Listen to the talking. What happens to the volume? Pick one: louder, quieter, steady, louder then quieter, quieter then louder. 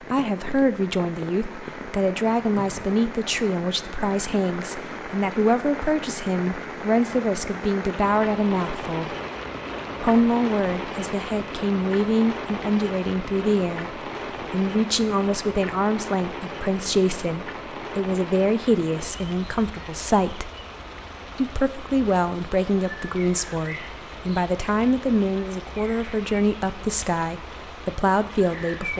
steady.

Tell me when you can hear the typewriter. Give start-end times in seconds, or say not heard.
not heard.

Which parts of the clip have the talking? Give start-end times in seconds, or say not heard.
0.1-9.2, 10.0-20.5, 21.4-28.9.